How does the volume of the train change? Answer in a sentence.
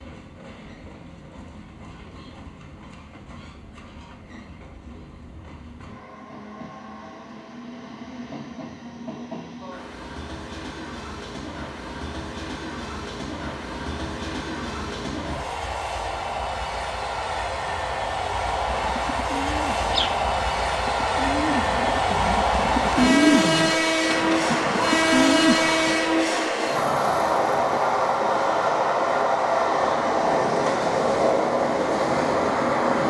The loudness of the train goes up.